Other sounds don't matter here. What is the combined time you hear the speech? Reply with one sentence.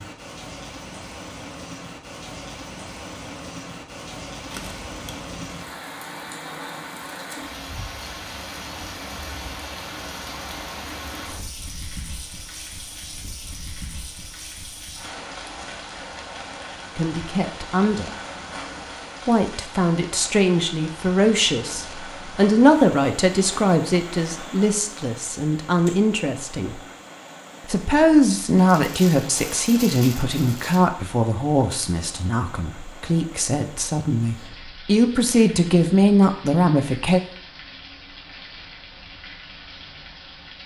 You can hear the speech for 18 seconds altogether.